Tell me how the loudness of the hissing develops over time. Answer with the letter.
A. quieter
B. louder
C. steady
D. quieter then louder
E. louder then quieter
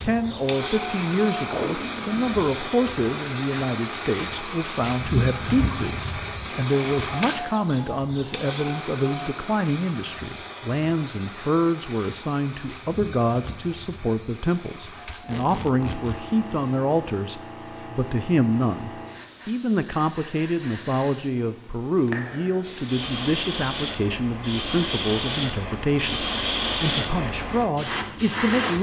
D.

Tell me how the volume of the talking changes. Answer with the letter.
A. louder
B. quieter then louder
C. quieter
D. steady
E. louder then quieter
D.